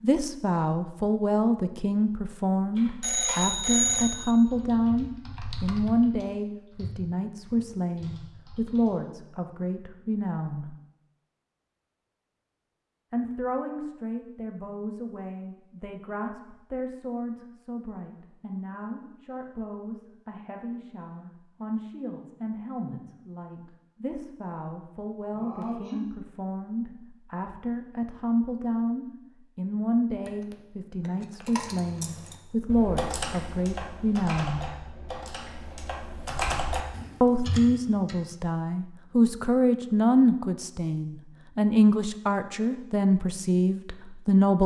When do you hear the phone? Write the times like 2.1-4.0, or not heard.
3.0-4.3, 30.2-31.7.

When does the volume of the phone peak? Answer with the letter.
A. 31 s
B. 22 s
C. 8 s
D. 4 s
D.